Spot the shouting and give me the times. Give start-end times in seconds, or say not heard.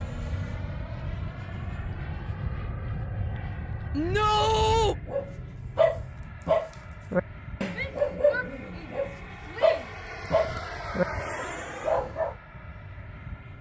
3.9-5.0, 7.7-9.9.